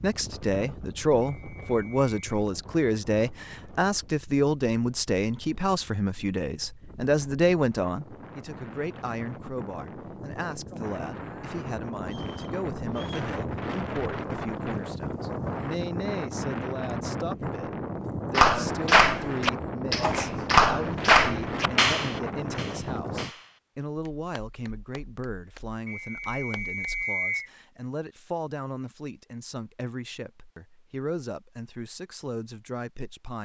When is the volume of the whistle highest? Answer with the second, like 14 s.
27 s.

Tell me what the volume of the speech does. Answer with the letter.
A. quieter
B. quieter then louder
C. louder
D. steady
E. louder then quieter
A.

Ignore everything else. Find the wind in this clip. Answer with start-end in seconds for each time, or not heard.
0.0-23.3.